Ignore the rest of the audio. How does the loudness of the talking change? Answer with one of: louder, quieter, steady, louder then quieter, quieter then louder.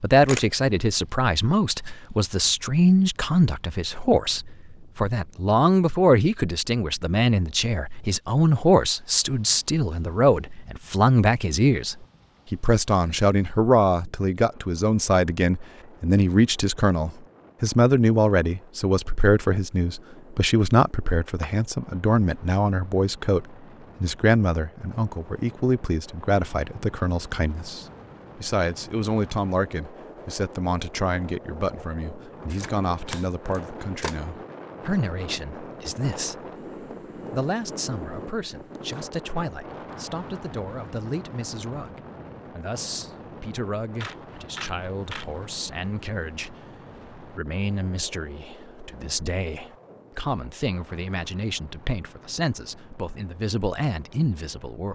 quieter.